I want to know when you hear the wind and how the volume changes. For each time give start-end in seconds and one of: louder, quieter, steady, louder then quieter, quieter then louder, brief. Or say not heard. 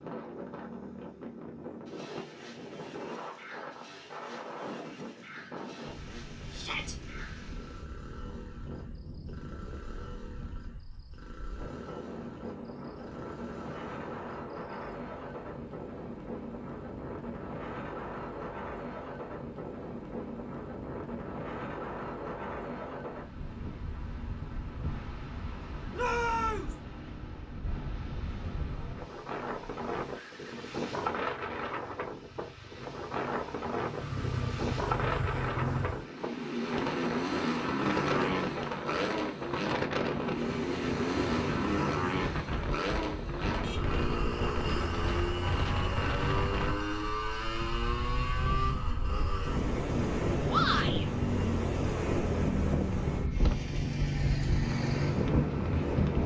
0.0-56.2 louder.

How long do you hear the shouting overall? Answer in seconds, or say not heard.
2 s.